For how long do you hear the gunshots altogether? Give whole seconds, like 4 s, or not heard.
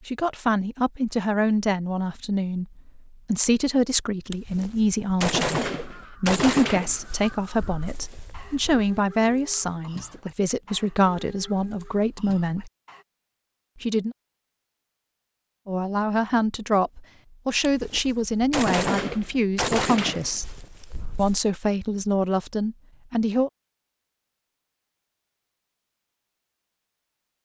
8 s.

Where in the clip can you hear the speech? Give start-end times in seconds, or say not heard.
0.1-12.7, 13.8-14.2, 15.7-20.5, 21.1-23.5.